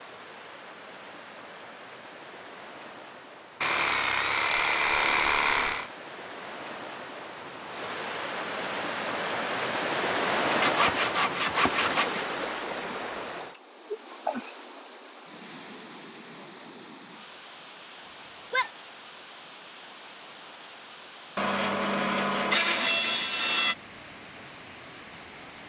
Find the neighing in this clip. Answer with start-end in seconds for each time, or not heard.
18.1-18.7.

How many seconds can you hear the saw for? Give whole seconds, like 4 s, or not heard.
6 s.